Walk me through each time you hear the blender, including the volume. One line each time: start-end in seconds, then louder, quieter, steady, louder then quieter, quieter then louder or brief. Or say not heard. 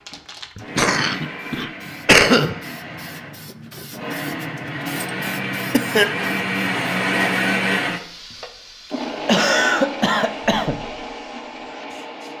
0.0-12.3 louder then quieter.